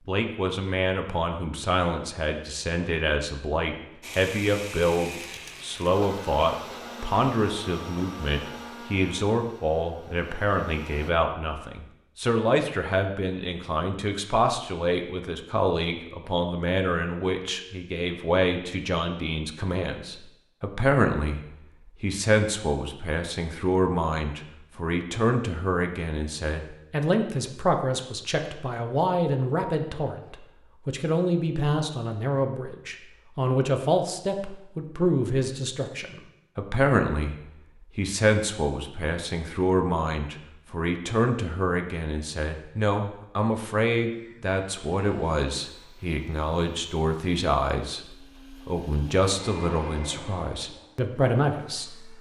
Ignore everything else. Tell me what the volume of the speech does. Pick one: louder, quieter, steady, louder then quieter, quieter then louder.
steady.